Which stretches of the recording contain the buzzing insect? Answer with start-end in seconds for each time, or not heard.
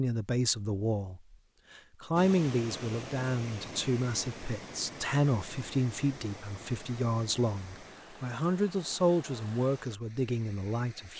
not heard.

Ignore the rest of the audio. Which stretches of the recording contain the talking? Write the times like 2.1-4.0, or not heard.
0.0-11.1.